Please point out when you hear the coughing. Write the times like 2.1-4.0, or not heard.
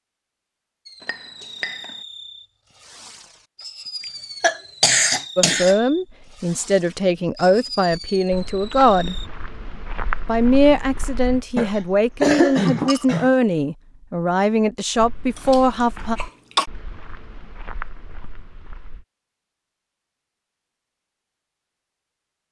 4.0-5.8, 11.6-13.3, 15.3-16.6.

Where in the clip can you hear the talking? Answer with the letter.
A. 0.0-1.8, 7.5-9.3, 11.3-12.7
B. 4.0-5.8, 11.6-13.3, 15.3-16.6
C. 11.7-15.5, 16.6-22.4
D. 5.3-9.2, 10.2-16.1
D.